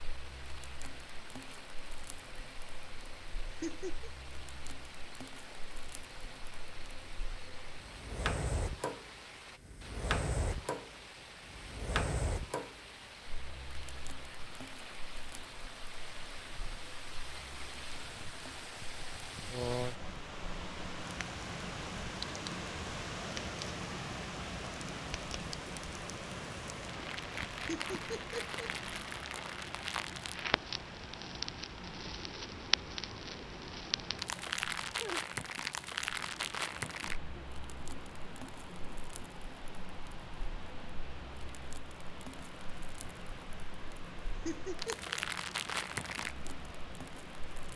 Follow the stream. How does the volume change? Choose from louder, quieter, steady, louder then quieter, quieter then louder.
louder then quieter.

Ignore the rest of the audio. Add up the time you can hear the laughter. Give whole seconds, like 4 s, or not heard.
2 s.